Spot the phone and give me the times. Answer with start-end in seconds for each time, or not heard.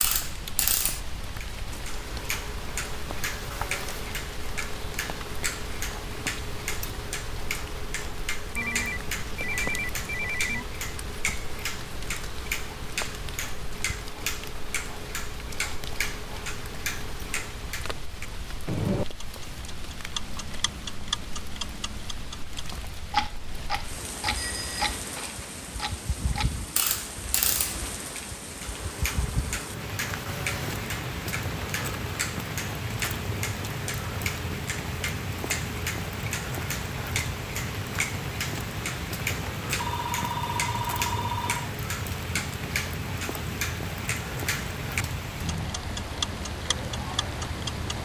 8.6-10.7, 24.4-24.9, 39.8-41.7.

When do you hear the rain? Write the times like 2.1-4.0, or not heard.
0.0-48.0.